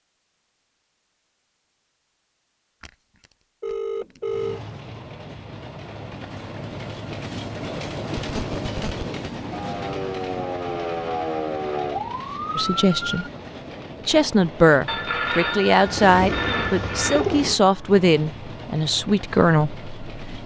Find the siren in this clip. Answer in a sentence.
The siren can be heard from 9.5 to 13.3 s.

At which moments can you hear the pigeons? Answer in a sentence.
You can hear the pigeons from 15.8 to 17.6 s.